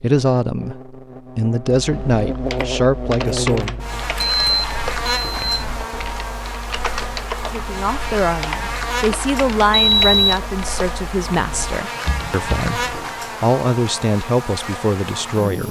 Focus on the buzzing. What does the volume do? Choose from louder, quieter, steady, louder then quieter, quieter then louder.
steady.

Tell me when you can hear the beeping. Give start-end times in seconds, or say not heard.
4.2-5.7, 9.7-10.4.